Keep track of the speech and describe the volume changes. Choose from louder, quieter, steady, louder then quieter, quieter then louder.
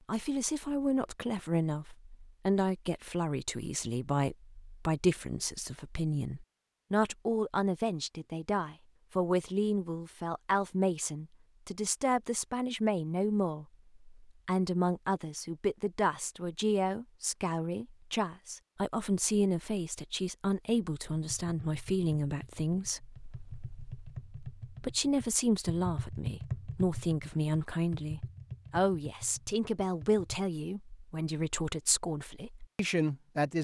steady.